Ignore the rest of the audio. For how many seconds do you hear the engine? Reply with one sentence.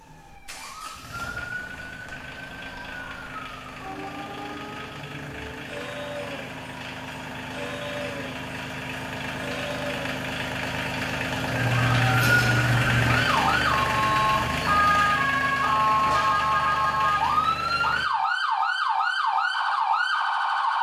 The engine can be heard for 18 seconds in total.